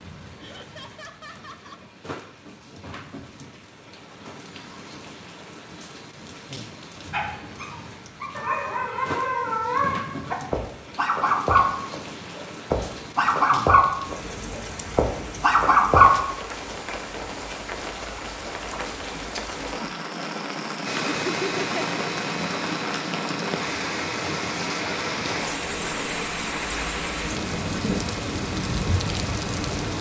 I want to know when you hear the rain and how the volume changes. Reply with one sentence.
You can hear the rain from 0.0 to 29.9 s, getting louder.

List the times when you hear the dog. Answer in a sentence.
You can hear the dog from 7.1 to 16.1 s.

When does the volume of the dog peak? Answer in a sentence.
The volume of the dog peaks at 16 seconds.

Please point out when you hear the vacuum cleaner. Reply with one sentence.
The vacuum cleaner can be heard from 20.9 to 29.9 s.